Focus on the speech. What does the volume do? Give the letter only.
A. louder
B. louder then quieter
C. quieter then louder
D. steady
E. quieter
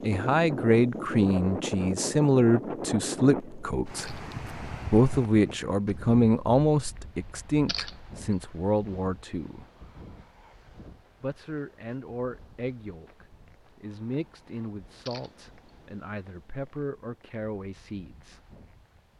E.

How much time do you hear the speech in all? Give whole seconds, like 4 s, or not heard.
17 s.